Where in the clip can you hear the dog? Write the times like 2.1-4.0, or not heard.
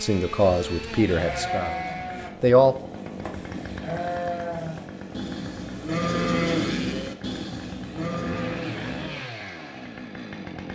not heard.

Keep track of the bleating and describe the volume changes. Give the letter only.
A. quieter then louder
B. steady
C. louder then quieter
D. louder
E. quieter
C.